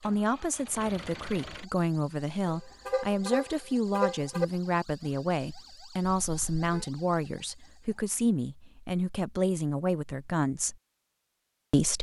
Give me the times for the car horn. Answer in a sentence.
The car horn can be heard from 2.5 to 4.5 s and from 6.0 to 6.8 s.